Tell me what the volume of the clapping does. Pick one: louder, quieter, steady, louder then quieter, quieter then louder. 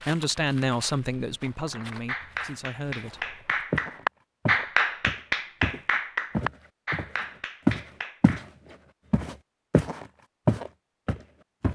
louder then quieter.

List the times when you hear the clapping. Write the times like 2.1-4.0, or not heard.
1.6-8.4.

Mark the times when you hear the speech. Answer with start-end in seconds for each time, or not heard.
0.1-3.4.